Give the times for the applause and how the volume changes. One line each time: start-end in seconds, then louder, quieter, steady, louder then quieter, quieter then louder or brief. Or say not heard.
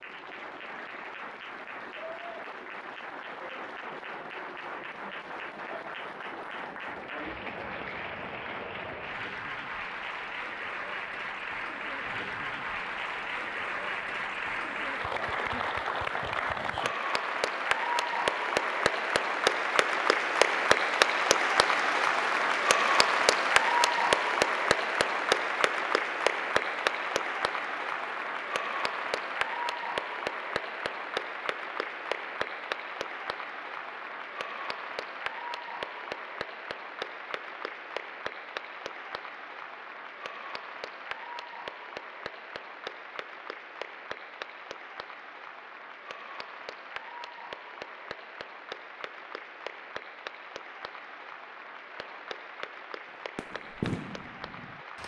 0.0-55.0 louder then quieter.